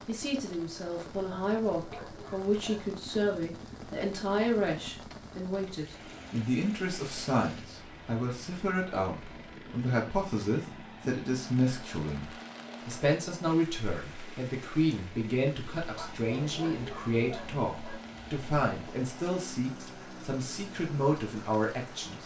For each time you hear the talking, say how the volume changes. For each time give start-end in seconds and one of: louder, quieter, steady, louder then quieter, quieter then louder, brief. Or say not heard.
0.1-22.2 steady.